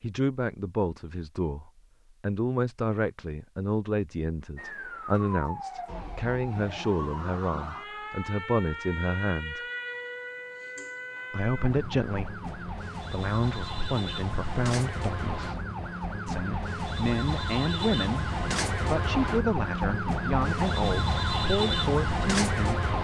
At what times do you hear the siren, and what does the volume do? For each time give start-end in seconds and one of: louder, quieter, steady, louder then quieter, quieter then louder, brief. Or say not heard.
4.5-22.9 louder.